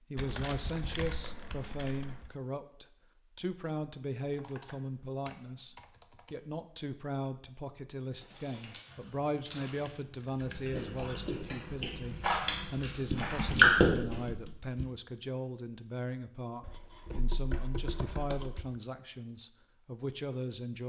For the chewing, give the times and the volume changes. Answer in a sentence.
The chewing can be heard from 8.1 to 14.2 s, getting louder.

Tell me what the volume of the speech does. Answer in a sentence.
The volume of the speech stays about the same.